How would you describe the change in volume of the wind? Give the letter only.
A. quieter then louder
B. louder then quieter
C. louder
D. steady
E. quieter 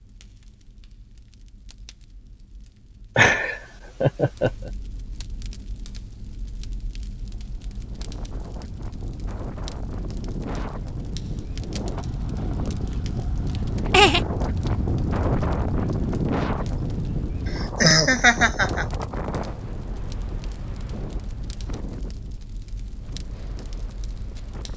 B.